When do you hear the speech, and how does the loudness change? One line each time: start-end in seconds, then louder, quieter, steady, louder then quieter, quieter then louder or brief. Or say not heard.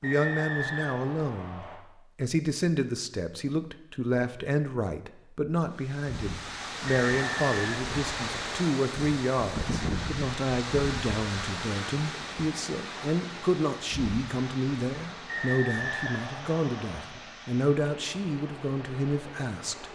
0.0-19.9 steady.